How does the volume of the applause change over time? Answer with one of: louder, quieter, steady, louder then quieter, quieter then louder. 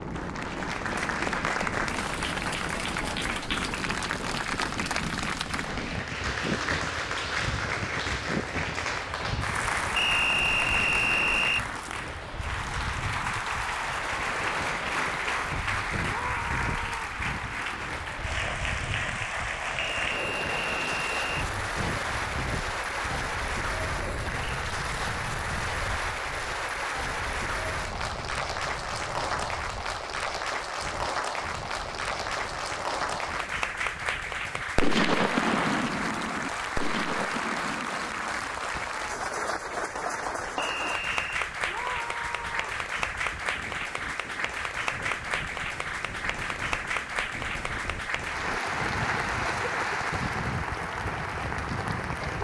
steady.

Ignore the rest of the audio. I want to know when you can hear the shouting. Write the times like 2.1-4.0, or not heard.
16.1-17.2, 41.6-42.9.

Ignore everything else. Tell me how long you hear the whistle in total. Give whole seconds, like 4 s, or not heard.
4 s.